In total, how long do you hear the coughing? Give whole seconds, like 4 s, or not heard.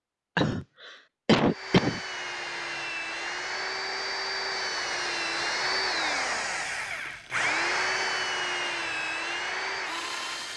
2 s.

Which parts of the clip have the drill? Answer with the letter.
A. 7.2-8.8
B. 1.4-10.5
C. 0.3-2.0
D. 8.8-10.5
B.